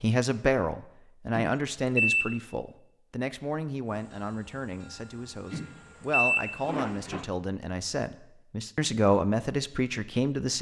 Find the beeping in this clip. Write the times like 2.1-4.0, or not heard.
1.4-2.4, 5.5-7.2.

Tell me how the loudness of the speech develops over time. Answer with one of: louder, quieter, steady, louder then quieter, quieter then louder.
quieter then louder.